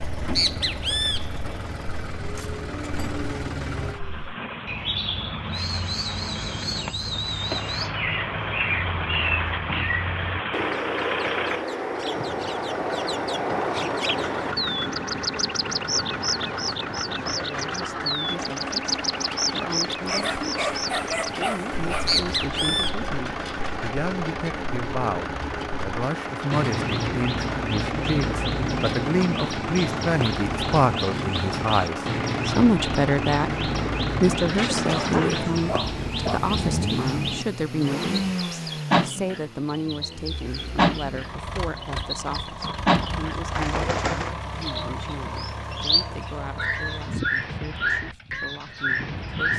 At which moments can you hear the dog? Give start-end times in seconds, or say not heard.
20.1-22.2, 34.5-36.4.